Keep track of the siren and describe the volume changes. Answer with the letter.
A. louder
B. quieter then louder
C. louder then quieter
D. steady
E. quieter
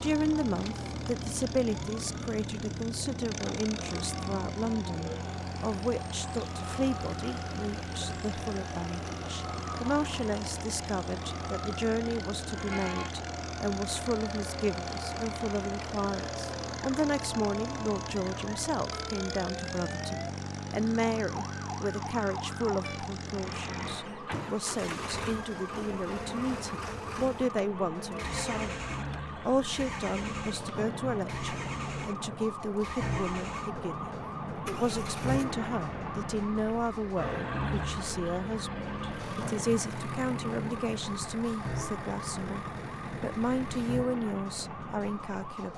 A.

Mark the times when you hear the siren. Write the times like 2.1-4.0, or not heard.
0.0-45.7.